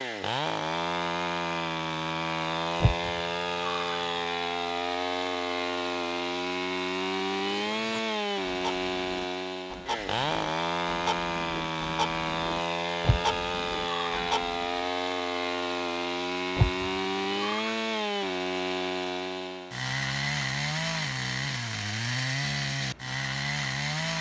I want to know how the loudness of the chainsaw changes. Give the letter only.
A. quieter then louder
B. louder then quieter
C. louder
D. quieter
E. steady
E.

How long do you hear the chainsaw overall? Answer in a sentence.
The chainsaw can be heard for 24 seconds in total.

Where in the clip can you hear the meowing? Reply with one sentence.
The meowing can be heard from 2.8 to 4.2 s, from 13.0 to 14.2 s and from 16.6 to 17.8 s.